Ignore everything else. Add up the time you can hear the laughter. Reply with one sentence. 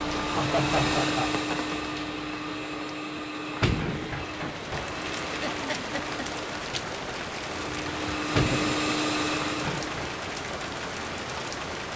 The laughter can be heard for 3 seconds in total.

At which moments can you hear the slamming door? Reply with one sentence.
The slamming door can be heard from 3.1 to 4.2 s and from 7.9 to 8.8 s.